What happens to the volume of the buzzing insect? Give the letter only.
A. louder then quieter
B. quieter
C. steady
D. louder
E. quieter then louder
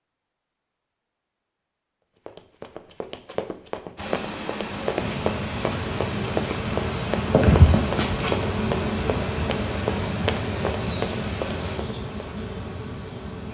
A.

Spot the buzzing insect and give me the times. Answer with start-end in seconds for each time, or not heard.
4.9-13.4.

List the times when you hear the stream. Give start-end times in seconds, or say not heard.
4.0-13.4.